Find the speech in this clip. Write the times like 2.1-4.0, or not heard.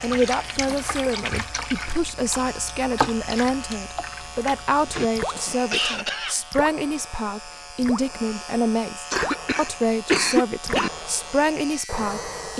0.0-12.5.